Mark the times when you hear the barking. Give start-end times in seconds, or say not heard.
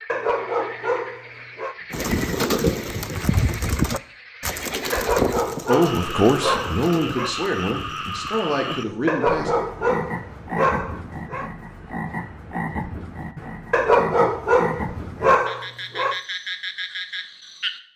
0.1-1.8, 4.9-7.3, 9.1-11.5, 13.7-16.2.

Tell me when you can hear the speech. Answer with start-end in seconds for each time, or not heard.
5.7-9.5.